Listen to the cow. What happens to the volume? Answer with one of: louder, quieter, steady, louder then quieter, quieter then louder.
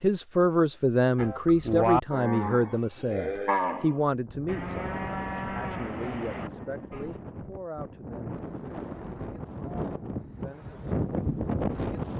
quieter.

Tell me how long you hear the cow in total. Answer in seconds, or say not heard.
6 s.